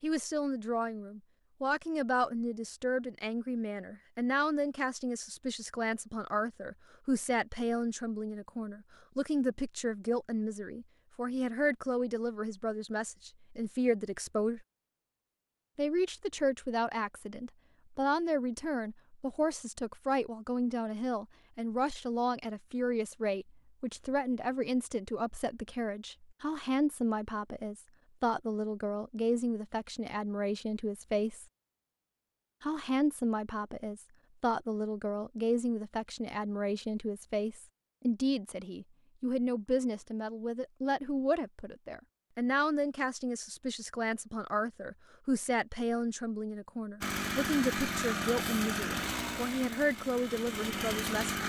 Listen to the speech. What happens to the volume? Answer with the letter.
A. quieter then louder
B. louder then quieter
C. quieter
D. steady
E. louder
D.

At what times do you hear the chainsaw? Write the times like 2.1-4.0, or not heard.
47.0-51.4.